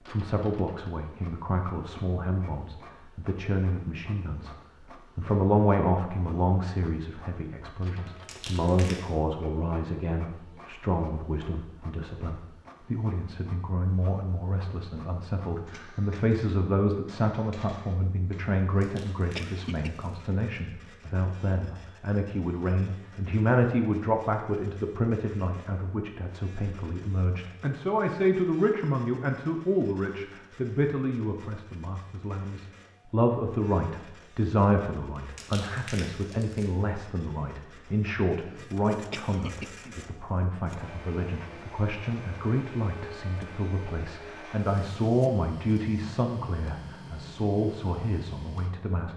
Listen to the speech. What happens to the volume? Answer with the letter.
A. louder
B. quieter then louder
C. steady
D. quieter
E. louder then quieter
C.